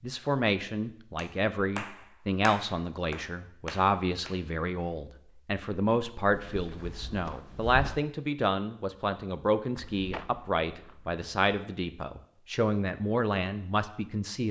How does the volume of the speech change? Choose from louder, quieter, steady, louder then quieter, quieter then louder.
steady.